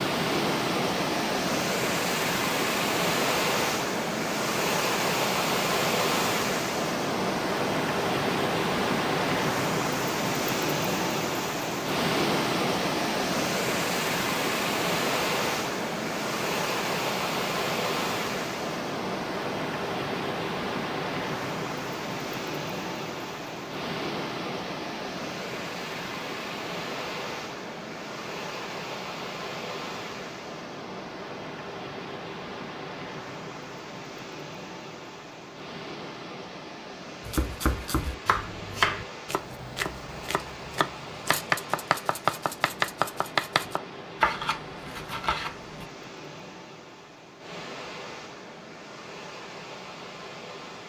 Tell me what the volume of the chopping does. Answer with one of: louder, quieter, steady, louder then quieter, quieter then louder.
quieter then louder.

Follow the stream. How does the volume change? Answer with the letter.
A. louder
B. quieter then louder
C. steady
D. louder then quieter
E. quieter
E.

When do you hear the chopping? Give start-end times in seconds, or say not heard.
37.2-45.9.